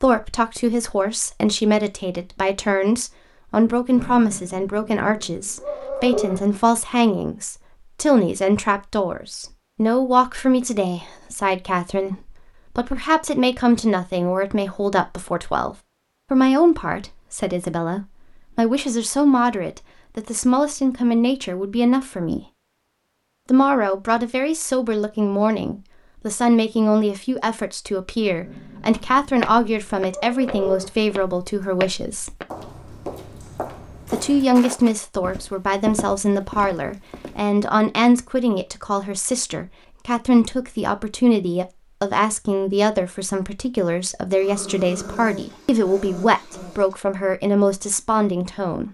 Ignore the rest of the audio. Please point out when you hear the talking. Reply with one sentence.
You can hear the talking from 0.0 to 22.4 s, from 23.5 to 32.4 s and from 34.1 to 48.8 s.